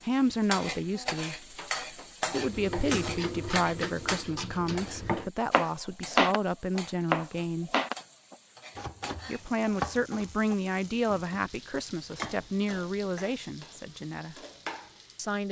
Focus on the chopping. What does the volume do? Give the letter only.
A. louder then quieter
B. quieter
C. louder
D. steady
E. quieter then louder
A.